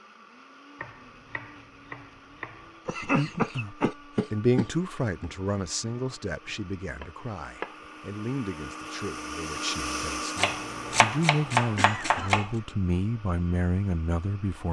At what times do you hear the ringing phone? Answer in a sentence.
The ringing phone can't be heard in this clip.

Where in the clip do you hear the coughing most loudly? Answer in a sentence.
The volume of the coughing peaks at 3 seconds.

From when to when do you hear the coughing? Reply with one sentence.
You can hear the coughing from 2.9 to 4.7 s and from 11.8 to 12.4 s.